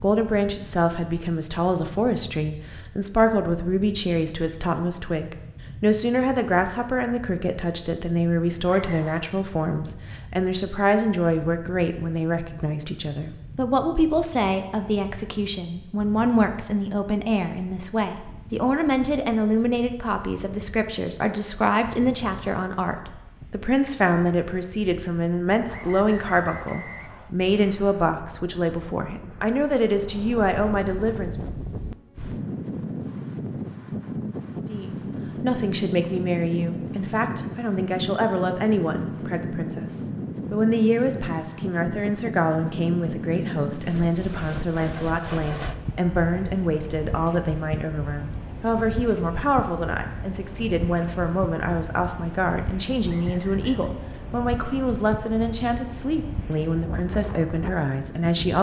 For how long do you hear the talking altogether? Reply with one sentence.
The talking can be heard for 55 seconds in total.